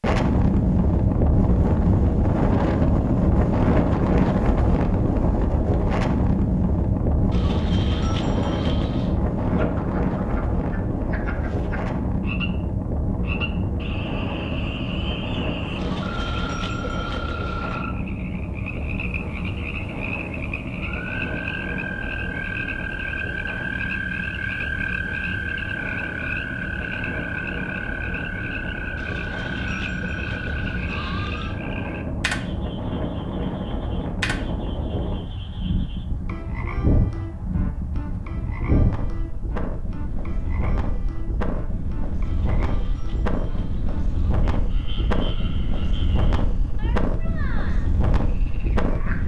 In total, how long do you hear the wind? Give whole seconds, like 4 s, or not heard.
49 s.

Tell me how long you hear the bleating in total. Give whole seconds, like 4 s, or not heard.
9 s.